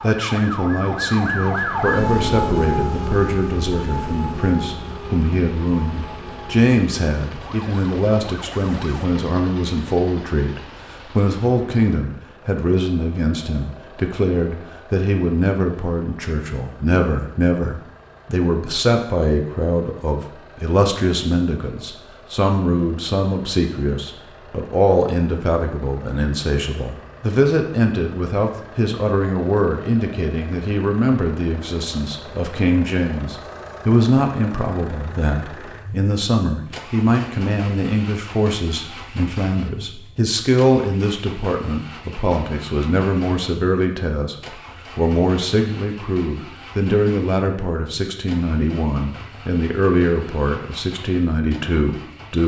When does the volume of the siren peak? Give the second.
2 s.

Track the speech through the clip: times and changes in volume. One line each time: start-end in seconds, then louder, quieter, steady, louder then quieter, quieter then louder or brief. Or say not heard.
0.0-52.4 steady.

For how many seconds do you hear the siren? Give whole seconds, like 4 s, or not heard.
9 s.